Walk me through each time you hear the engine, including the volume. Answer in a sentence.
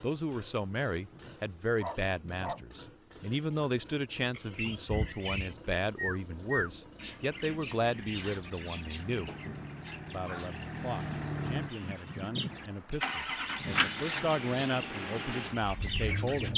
The engine can be heard from 0.0 to 16.5 s, getting louder.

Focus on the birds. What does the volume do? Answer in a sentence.
The loudness of the birds goes down, then up.